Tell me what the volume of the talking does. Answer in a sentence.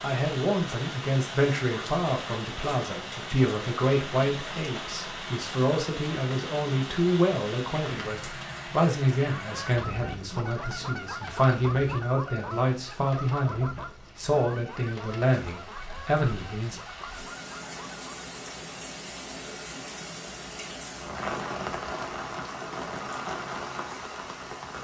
The volume of the talking stays about the same.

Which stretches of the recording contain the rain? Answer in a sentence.
The rain can be heard from 0.0 to 24.7 s.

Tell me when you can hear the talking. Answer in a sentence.
The talking can be heard from 0.0 to 16.8 s.